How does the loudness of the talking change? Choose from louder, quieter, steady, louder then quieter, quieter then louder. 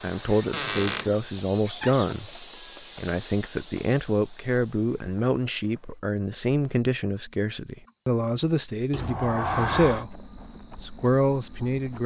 steady.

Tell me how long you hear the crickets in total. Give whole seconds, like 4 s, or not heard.
12 s.